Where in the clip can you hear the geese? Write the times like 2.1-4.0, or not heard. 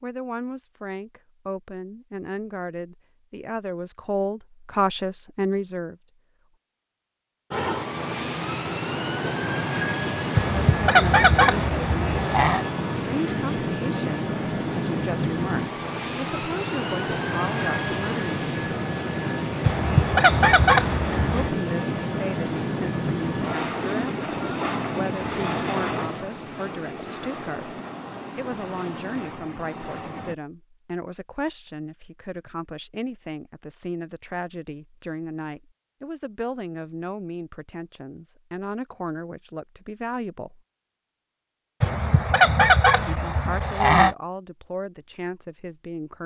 10.3-12.7, 19.6-21.5, 41.8-44.1.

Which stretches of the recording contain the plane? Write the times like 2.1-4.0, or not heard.
7.5-30.4.